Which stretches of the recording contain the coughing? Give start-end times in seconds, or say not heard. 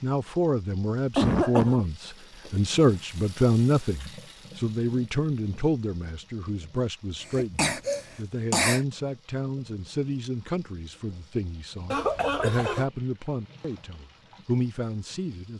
1.1-1.8, 7.2-8.8, 11.9-12.8.